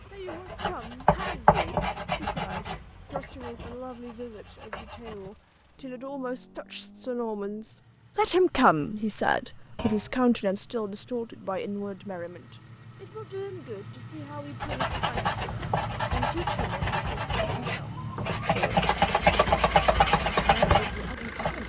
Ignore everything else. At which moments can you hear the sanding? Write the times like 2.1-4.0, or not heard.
0.2-5.3, 14.6-21.6.